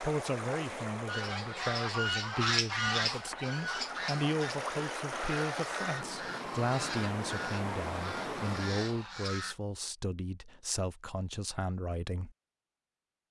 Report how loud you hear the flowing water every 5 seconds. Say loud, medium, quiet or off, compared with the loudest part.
loud, loud, off.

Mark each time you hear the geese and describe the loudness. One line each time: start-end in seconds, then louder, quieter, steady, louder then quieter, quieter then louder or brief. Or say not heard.
1.1-9.6 quieter.